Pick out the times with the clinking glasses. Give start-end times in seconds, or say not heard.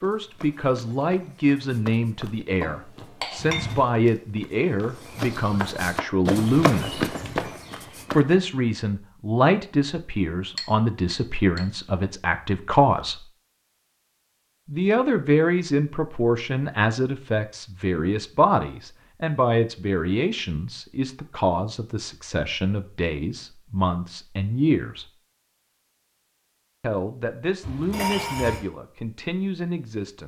2.6-3.7, 10.6-11.6, 27.6-28.6.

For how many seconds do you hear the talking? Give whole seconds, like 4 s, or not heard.
26 s.